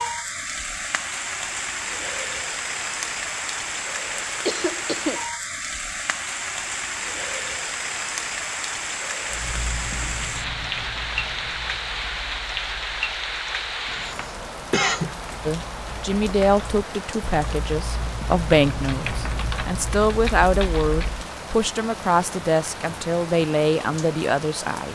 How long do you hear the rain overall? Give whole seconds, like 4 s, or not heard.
25 s.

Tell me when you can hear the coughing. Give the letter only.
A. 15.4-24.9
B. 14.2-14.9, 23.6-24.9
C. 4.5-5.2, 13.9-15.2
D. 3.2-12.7
C.